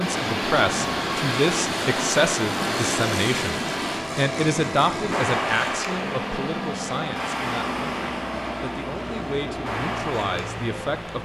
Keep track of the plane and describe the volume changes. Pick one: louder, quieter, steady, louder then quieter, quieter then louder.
steady.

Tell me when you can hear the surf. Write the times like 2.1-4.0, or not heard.
0.0-11.2.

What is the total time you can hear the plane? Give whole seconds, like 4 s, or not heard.
11 s.